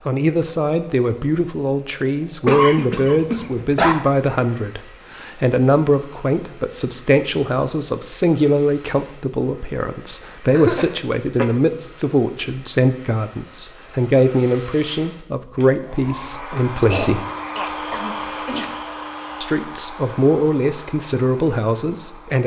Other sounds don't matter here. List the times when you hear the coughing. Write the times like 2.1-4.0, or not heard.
2.5-4.0, 10.6-11.4, 16.8-18.6.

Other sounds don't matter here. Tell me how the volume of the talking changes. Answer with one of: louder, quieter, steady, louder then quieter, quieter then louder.
steady.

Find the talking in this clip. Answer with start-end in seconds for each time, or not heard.
0.1-17.2, 19.4-22.4.